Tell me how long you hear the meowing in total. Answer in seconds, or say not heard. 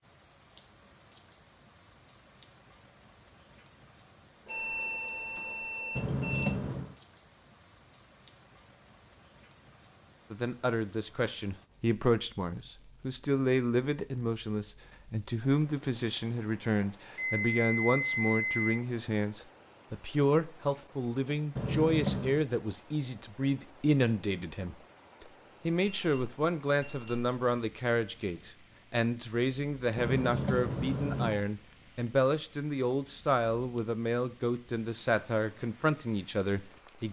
3 s.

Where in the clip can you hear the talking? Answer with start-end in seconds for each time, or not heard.
10.3-37.0.